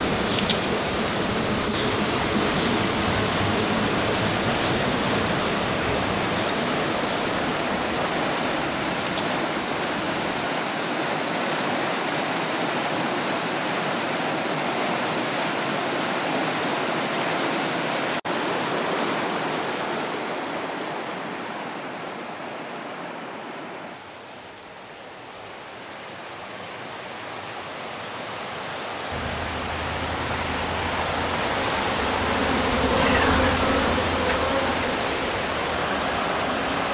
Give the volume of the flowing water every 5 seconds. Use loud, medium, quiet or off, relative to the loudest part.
loud, loud, loud, loud, medium, medium, loud, loud.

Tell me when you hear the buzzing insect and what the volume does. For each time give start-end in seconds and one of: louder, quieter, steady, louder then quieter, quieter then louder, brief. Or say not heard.
0.0-10.2 quieter
29.1-36.9 louder then quieter.